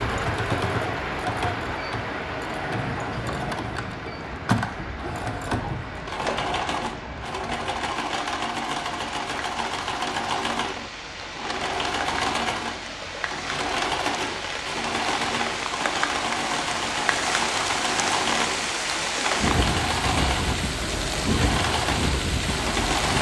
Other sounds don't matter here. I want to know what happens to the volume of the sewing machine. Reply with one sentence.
The loudness of the sewing machine stays about the same.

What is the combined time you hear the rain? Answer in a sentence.
The rain can be heard for 23 seconds in total.